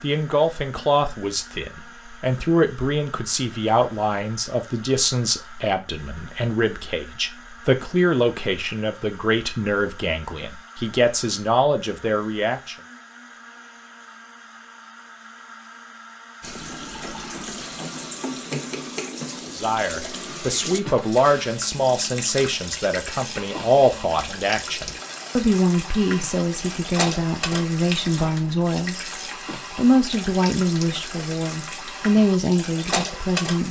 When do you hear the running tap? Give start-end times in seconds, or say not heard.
16.4-33.6.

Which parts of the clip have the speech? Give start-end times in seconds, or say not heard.
0.0-12.8, 19.4-29.1, 29.7-33.6.